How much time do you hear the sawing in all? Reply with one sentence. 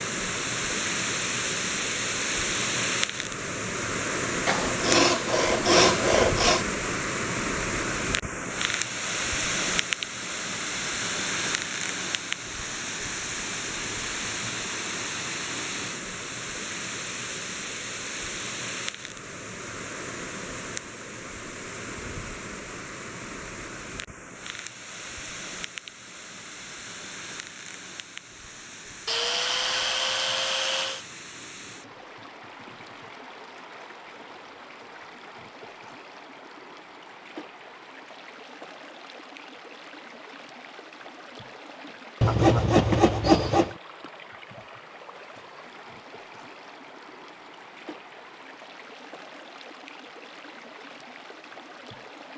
The sawing can be heard for 6 seconds in total.